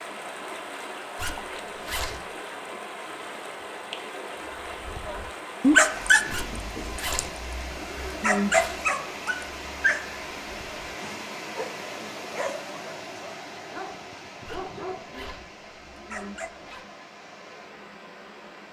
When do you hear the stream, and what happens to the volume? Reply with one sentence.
You can hear the stream from 0.0 to 18.6 s, getting quieter.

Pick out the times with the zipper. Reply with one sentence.
You can hear the zipper from 1.1 to 2.2 s, from 6.3 to 8.9 s and from 14.4 to 16.9 s.